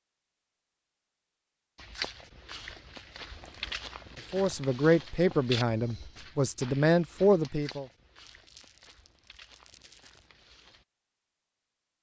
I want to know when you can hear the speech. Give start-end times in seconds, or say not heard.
4.3-7.8.